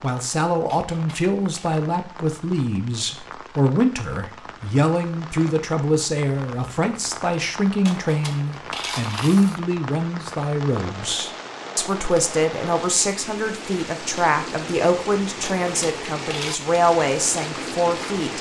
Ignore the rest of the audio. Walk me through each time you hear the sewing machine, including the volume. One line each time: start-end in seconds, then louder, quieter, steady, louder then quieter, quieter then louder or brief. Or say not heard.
not heard.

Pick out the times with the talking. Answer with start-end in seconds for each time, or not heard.
0.0-18.3.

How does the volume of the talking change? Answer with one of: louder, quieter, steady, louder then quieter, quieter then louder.
steady.